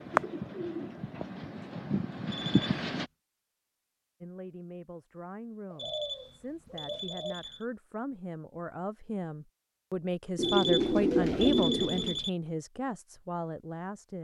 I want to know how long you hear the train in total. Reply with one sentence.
You can hear the train for 3 seconds altogether.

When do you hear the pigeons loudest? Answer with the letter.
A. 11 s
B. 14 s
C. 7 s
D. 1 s
A.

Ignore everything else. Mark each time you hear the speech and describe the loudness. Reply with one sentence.
The speech can be heard from 4.2 to 14.1 s, getting louder then quieter.